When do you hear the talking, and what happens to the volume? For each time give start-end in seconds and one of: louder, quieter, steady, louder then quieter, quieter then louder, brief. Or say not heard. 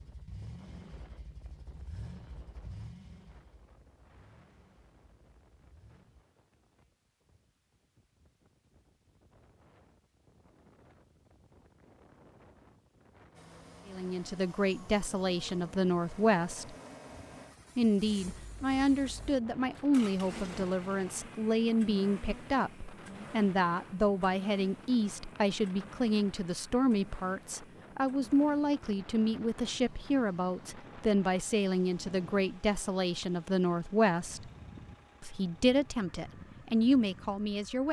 13.8-16.8 brief
17.8-34.5 steady
35.2-37.8 brief.